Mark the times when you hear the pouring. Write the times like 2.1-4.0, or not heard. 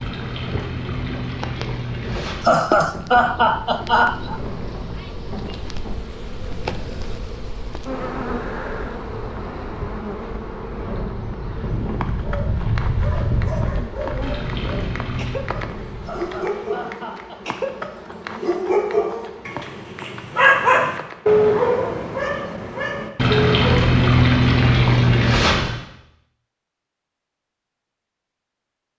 0.0-2.6, 14.2-15.5, 23.1-25.8.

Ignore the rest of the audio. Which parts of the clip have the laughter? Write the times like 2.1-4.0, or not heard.
2.4-4.4, 16.1-17.4.